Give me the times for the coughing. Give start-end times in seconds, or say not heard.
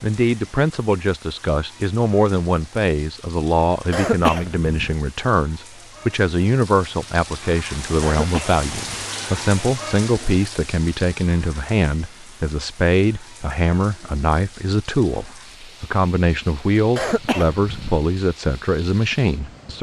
3.9-5.0, 8.0-9.1, 16.9-18.0.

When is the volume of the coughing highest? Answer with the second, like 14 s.
4 s.